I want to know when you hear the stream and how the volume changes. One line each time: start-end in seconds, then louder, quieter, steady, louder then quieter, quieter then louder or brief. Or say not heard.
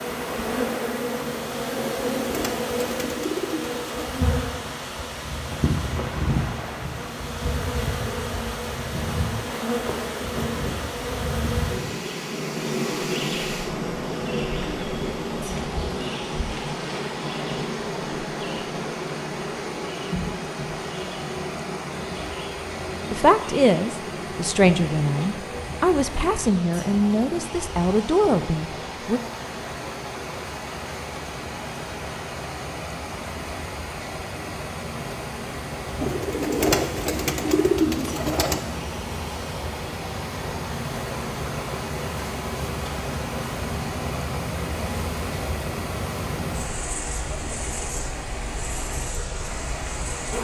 0.0-50.3 steady.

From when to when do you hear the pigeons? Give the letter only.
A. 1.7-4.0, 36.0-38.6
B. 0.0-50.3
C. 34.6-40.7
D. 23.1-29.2
A.